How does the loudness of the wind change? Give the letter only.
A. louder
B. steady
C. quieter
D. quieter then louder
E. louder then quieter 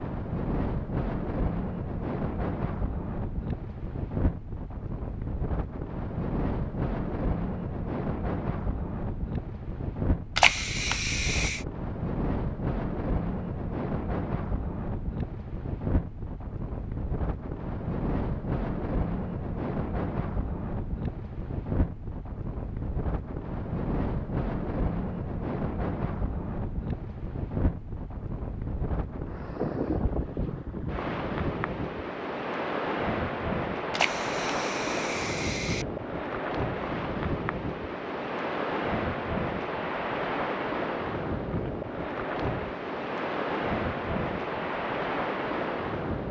B.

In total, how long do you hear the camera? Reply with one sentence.
The camera can be heard for 3 seconds in total.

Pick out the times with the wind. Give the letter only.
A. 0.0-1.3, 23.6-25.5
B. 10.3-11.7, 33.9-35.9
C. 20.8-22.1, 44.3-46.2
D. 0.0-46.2
D.